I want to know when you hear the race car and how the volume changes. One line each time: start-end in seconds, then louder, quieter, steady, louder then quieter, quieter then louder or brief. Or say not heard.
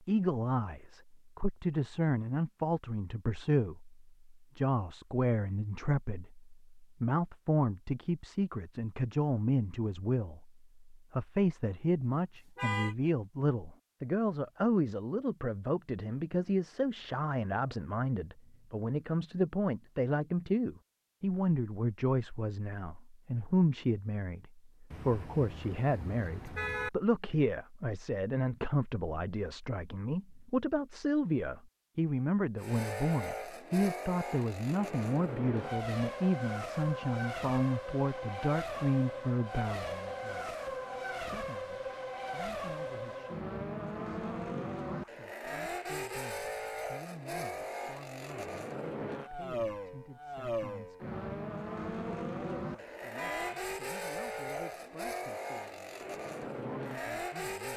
32.5-57.7 steady.